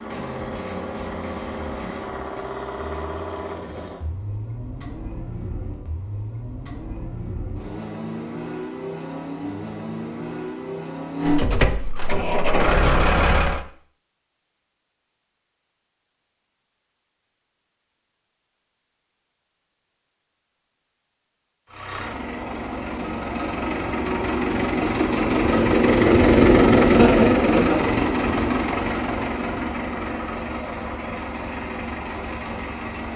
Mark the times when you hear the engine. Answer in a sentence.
You can hear the engine from 0.0 to 13.7 s and from 21.6 to 33.1 s.